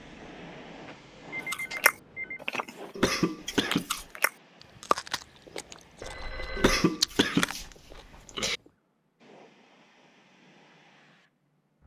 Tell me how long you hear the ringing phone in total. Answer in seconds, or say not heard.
2 s.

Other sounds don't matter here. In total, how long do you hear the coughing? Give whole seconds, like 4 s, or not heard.
3 s.